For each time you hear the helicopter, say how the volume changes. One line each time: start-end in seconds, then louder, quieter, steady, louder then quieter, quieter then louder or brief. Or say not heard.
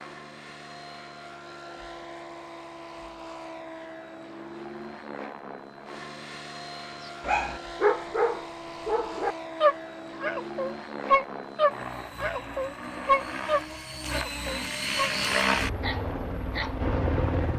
0.0-17.5 louder.